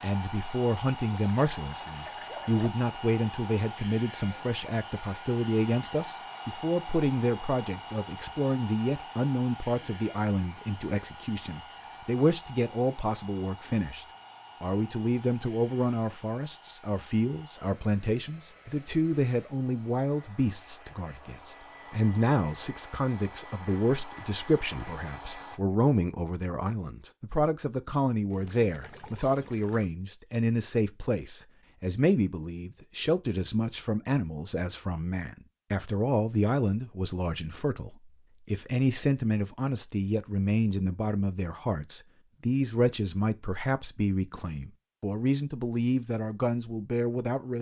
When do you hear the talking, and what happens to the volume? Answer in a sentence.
The talking can be heard from 0.0 to 47.5 s, at a steady volume.